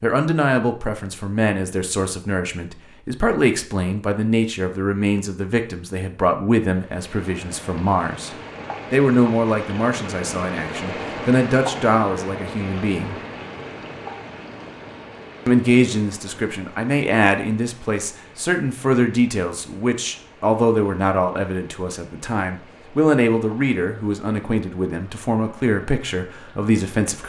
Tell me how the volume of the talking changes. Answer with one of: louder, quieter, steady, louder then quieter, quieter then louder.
steady.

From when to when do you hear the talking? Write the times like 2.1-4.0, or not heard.
0.0-8.3, 8.9-13.2, 15.4-27.2.